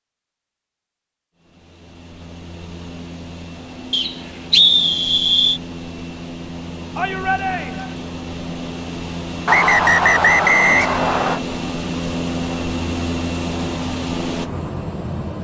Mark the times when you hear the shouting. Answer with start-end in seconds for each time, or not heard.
7.0-8.0.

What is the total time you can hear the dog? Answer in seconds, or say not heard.
not heard.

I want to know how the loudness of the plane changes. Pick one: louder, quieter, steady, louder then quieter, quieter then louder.
louder.